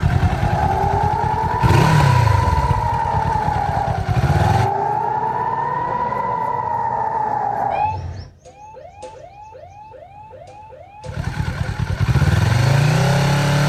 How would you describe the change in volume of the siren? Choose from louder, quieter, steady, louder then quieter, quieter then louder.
quieter.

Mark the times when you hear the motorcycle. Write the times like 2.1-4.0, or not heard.
0.0-6.8, 11.1-13.6.